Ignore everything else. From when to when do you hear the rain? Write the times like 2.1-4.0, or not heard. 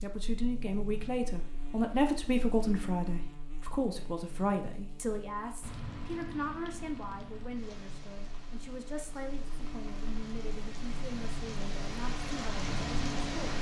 5.6-13.5.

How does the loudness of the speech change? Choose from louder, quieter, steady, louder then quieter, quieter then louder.
quieter.